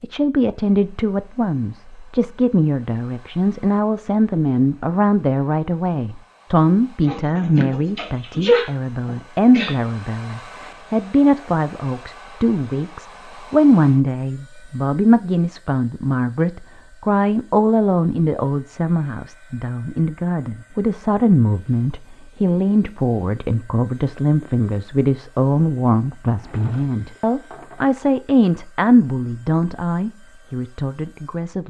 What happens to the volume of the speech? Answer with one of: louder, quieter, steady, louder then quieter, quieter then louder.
steady.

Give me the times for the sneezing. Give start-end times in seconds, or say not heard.
7.0-9.8.